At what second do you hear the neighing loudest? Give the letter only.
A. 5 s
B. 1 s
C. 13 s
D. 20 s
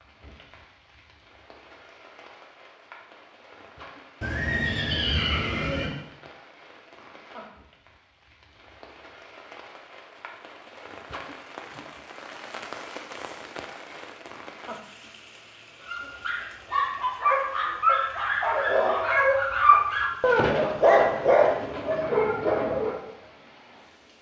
A.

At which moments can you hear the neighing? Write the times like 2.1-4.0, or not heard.
4.2-5.9, 18.7-19.2.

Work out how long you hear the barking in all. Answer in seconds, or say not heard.
7 s.